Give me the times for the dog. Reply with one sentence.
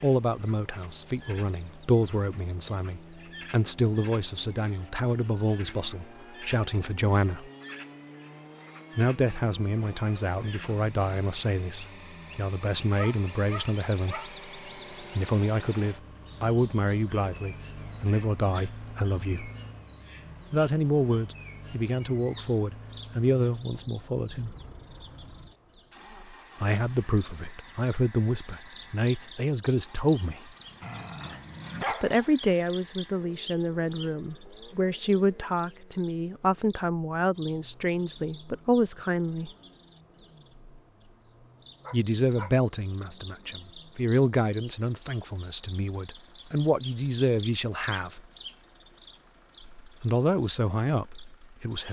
The dog can be heard from 12.9 to 14.3 s, from 30.8 to 32.4 s and from 41.8 to 42.5 s.